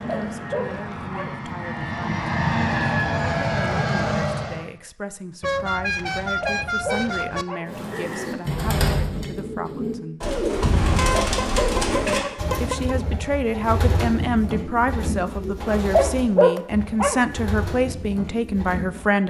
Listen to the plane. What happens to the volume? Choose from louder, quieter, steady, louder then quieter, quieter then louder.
louder.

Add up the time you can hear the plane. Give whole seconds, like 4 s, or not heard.
5 s.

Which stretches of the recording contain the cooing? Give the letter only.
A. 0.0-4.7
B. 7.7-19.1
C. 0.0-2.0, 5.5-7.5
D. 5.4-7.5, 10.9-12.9
B.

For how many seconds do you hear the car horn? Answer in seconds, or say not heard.
4 s.